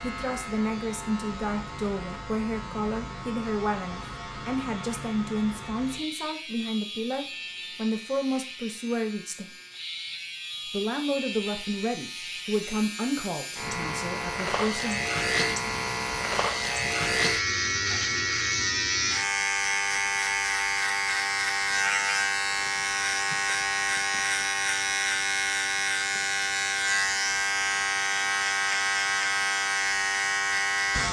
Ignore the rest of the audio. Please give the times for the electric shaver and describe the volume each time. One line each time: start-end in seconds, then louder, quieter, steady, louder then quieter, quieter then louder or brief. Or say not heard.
0.0-31.0 louder.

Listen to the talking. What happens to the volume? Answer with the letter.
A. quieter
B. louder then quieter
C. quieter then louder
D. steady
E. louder
D.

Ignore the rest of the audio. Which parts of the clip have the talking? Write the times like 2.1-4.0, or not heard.
0.0-9.5, 10.7-15.1.